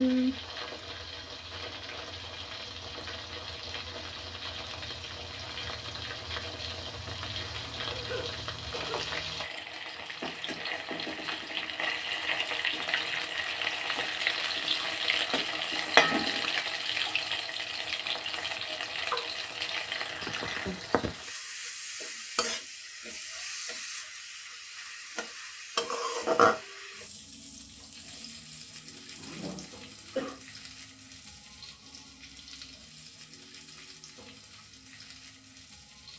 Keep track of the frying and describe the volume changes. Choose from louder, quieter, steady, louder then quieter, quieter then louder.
louder then quieter.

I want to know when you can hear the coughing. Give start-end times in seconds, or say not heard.
7.3-9.2, 18.6-19.3, 29.1-30.4.